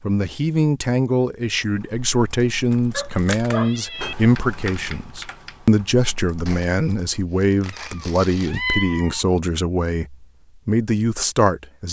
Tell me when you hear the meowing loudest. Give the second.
9 s.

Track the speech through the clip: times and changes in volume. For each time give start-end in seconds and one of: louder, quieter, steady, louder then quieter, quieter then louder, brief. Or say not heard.
0.0-11.8 steady.